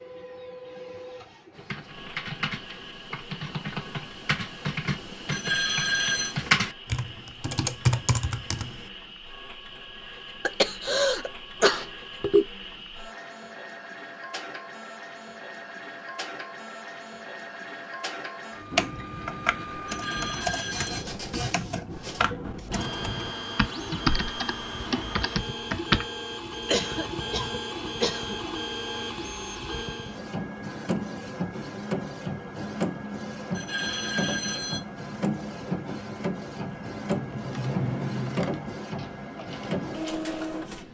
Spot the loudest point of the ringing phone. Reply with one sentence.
The loudest moment of the ringing phone is at 6 seconds.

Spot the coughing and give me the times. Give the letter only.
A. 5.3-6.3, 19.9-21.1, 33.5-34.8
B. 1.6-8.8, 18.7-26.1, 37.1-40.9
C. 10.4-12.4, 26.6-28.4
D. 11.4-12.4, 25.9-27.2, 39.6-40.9
C.